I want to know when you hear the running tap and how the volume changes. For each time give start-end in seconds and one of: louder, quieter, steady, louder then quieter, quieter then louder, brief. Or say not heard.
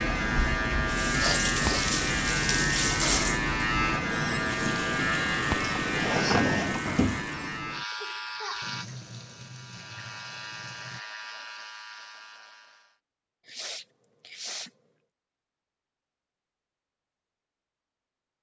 0.0-11.0 quieter.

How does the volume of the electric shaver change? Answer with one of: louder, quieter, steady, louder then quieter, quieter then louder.
quieter.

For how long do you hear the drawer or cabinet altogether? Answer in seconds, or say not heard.
2 s.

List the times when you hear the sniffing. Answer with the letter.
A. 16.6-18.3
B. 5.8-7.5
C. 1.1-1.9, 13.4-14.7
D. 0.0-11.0
C.